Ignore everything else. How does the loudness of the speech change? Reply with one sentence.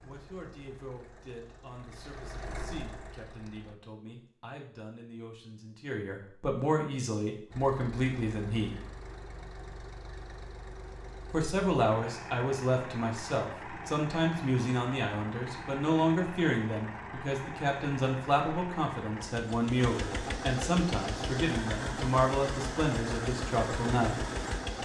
The loudness of the speech goes up.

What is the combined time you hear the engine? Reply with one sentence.
The engine can be heard for 21 seconds in total.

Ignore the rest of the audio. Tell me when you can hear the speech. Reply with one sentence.
You can hear the speech from 0.0 to 8.8 s and from 11.3 to 24.2 s.